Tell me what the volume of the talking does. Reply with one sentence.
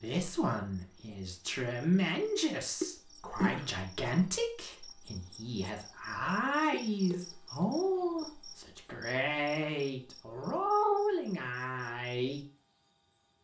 The volume of the talking stays about the same.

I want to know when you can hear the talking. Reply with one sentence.
The talking can be heard from 0.0 to 12.4 s.